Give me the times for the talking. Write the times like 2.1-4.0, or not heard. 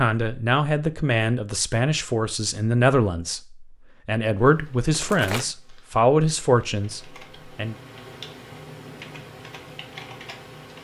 0.0-7.8.